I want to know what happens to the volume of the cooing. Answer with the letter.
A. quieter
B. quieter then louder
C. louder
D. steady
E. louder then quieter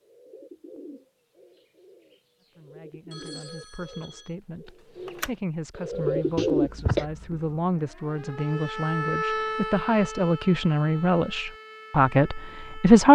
B.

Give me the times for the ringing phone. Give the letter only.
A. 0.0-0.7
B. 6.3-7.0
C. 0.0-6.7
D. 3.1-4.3
D.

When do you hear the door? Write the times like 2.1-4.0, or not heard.
not heard.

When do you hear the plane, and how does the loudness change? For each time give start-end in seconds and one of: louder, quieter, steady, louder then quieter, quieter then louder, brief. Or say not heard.
not heard.